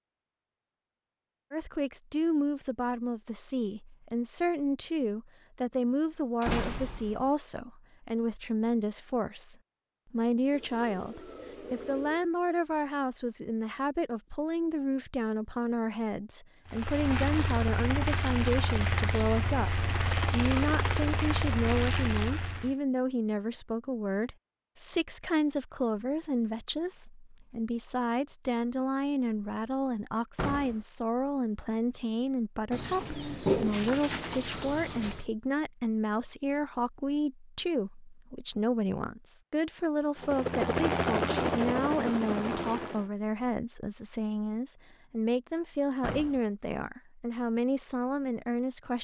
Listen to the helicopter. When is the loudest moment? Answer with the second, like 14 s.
41 s.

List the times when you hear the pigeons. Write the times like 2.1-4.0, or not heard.
10.5-12.3, 32.7-35.2.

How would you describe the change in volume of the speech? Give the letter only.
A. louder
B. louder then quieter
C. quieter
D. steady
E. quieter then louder
D.